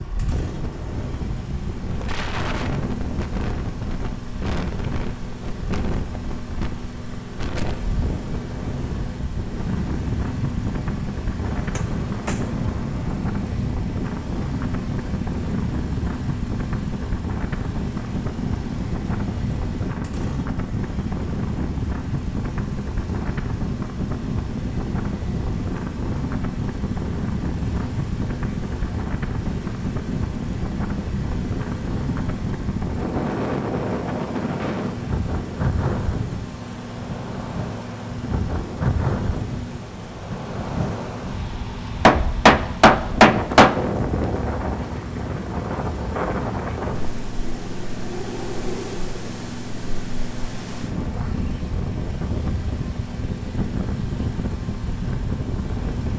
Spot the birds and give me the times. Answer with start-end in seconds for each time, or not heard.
not heard.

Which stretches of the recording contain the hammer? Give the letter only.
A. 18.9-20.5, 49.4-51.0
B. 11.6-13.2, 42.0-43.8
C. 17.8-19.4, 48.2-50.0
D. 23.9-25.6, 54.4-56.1
B.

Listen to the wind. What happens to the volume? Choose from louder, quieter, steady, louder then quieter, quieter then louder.
steady.